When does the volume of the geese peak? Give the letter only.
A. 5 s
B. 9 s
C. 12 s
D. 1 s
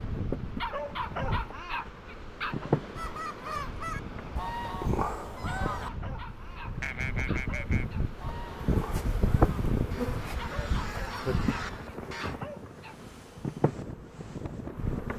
A.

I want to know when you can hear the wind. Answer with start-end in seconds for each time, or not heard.
0.0-15.1.